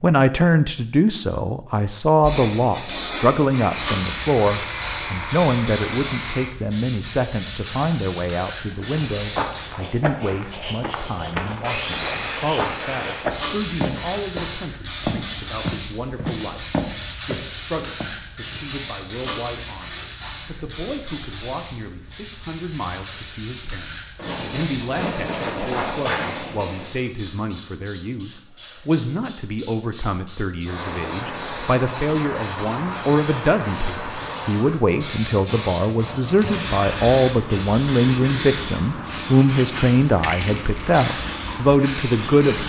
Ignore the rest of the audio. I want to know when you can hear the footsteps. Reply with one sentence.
The footsteps can be heard from 8.8 to 18.1 s.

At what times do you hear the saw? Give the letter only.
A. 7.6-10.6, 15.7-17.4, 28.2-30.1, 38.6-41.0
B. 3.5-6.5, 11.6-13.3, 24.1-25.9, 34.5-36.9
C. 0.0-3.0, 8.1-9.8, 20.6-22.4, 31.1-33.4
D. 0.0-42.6
B.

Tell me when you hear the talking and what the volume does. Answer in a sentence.
The talking can be heard from 0.0 to 42.6 s, getting quieter then louder.